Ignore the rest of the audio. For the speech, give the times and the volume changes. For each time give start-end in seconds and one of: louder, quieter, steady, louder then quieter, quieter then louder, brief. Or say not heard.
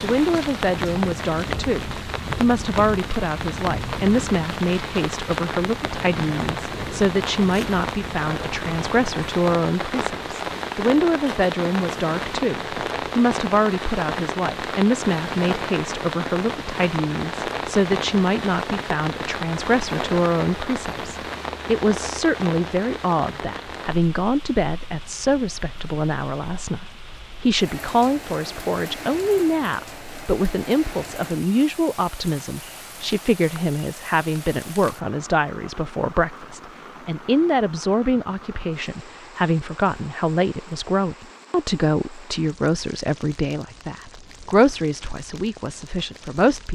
0.0-46.6 steady.